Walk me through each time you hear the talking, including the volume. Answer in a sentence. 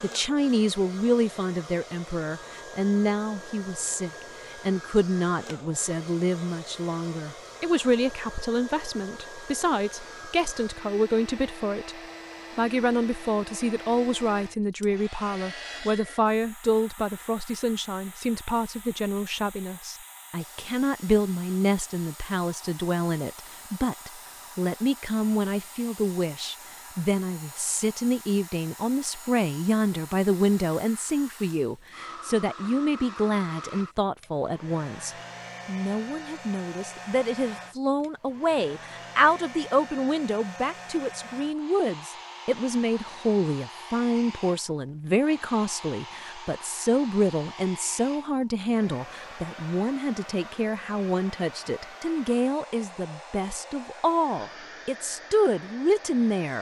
You can hear the talking from 0.0 to 56.5 s, at a steady volume.